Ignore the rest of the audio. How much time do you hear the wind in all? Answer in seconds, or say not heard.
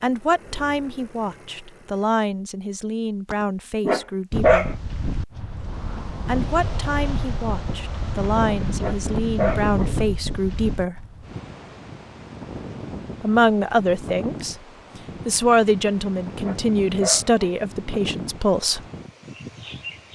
16 s.